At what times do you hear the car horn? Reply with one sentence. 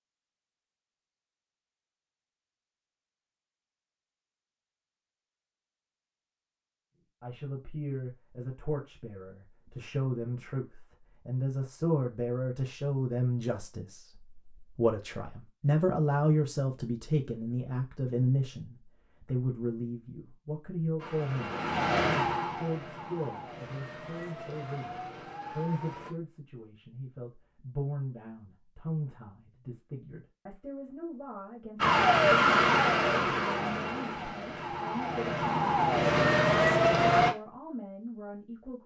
The car horn can't be heard in this clip.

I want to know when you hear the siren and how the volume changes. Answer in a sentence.
The siren can be heard from 20.9 to 26.1 s, getting quieter; and from 31.8 to 37.3 s, getting quieter then louder.